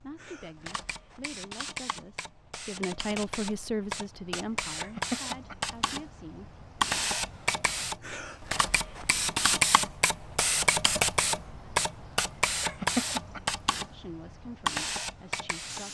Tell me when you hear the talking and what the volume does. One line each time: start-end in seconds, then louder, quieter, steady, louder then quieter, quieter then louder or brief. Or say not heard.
0.0-6.6 louder then quieter
13.9-15.8 brief.